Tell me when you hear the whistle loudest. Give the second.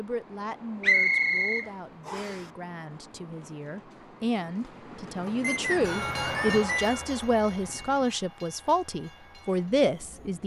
1 s.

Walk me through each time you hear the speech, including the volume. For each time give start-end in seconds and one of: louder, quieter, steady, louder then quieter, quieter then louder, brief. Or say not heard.
0.0-10.4 louder.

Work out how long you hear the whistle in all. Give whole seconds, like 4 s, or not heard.
3 s.